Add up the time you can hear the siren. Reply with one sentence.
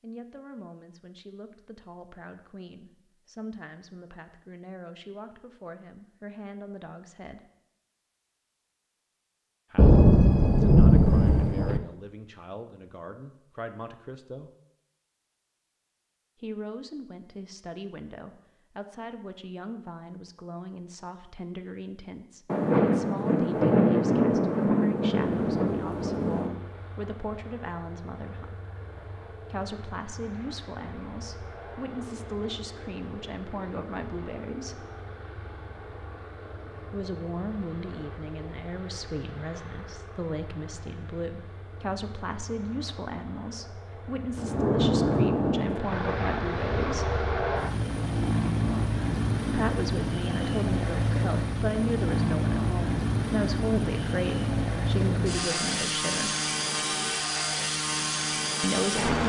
You can't hear the siren here.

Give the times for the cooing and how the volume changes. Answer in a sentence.
You can't hear the cooing here.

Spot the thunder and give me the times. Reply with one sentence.
The thunder can be heard from 9.8 to 11.8 s, from 22.4 to 26.6 s and from 44.4 to 45.8 s.